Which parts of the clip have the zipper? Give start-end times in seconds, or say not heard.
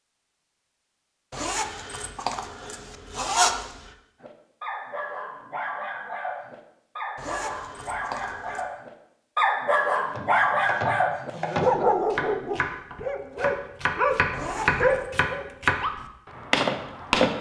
1.3-3.8, 7.2-8.7, 14.3-15.1.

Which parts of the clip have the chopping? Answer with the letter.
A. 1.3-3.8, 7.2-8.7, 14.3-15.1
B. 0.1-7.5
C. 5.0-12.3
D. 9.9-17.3
D.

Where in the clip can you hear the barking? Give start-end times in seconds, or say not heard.
4.2-15.5.